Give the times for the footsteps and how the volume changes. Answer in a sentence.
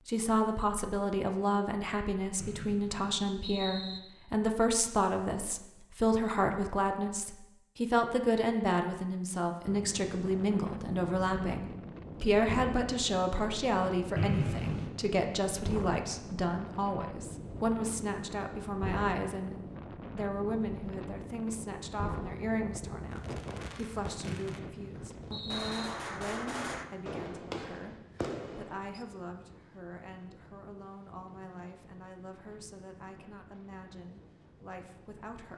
You can't hear the footsteps here.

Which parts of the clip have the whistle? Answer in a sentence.
You can hear the whistle from 2.4 to 4.0 s, from 14.2 to 14.9 s and from 24.3 to 25.9 s.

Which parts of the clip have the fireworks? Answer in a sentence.
You can hear the fireworks from 23.1 to 29.1 s.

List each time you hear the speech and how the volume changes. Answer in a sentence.
You can hear the speech from 0.1 to 35.5 s, getting quieter.